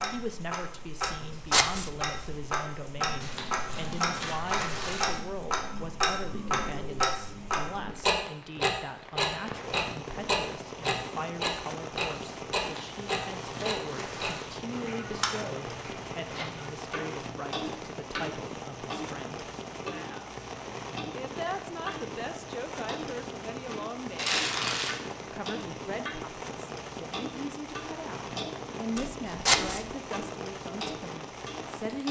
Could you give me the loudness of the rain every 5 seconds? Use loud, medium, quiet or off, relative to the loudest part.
quiet, medium, loud, loud, loud, loud, loud.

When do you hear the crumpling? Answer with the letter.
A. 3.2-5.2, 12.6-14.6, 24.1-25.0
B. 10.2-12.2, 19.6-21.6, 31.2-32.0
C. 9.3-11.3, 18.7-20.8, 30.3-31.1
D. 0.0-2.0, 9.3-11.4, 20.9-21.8
A.